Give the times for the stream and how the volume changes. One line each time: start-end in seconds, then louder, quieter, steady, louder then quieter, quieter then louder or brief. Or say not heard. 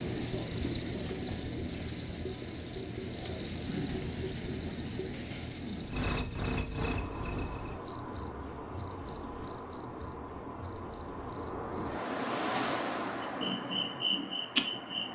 6.8-15.1 louder then quieter.